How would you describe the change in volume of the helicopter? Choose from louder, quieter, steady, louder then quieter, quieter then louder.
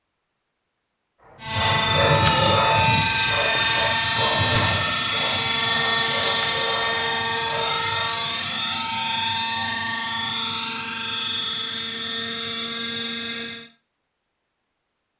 quieter.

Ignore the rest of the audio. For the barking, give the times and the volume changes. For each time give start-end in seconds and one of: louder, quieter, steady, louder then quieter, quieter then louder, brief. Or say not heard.
1.5-8.1 quieter.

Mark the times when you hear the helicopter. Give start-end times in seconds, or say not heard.
1.4-13.7.